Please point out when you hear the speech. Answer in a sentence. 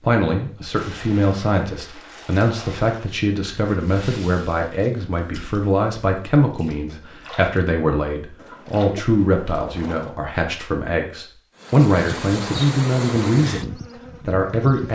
The speech can be heard from 0.0 to 13.7 s and from 14.2 to 14.9 s.